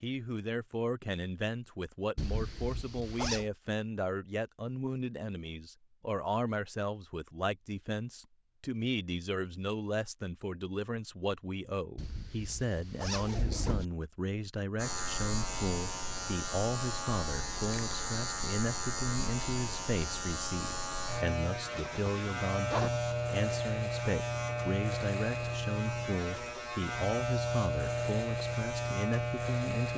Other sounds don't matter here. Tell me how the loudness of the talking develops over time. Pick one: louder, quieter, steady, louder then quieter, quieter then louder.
steady.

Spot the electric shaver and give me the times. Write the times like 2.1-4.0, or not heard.
14.8-29.9.